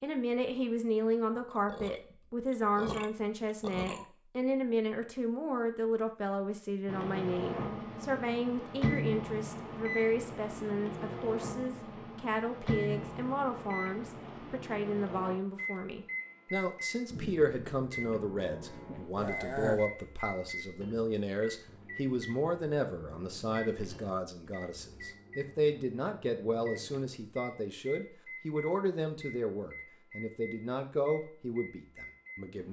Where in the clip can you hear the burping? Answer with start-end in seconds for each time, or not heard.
1.4-4.0, 19.1-19.9.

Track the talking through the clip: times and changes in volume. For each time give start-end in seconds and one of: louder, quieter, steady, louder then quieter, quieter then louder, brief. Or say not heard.
0.0-32.6 steady.